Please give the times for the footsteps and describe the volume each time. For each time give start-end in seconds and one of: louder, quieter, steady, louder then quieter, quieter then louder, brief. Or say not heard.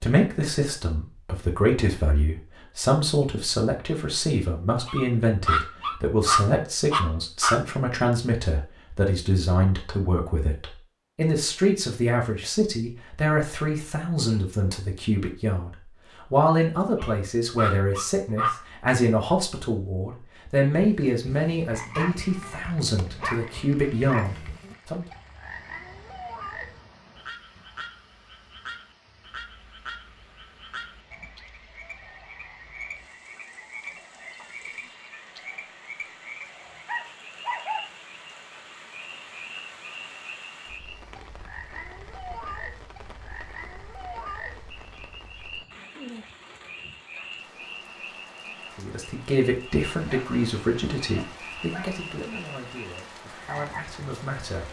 not heard.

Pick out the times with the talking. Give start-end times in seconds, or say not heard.
0.0-15.7, 16.3-25.1, 48.8-54.6.